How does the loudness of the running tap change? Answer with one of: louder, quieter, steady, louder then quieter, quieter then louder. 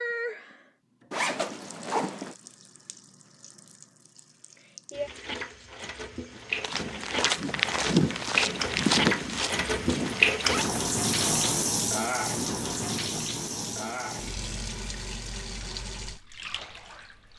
louder then quieter.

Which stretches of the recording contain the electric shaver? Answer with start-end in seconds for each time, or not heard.
not heard.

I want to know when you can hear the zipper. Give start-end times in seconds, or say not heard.
1.1-2.4, 10.1-11.8.